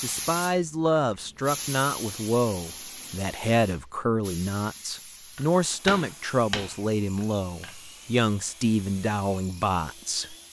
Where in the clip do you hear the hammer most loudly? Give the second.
6 s.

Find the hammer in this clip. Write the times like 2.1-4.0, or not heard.
5.3-7.8.